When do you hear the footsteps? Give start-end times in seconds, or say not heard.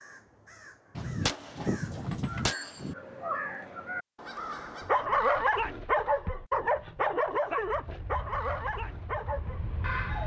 not heard.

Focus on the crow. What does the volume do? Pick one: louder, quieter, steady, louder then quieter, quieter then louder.
louder.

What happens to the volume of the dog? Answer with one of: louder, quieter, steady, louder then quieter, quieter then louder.
quieter.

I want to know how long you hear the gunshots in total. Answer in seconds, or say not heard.
2 s.